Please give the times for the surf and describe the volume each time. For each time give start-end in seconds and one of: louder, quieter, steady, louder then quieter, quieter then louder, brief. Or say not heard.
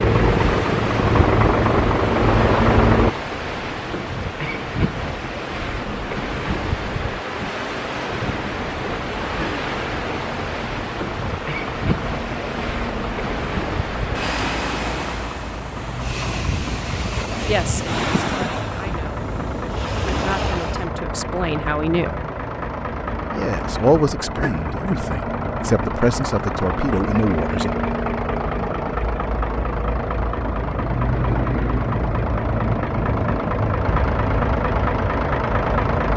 0.0-20.9 steady.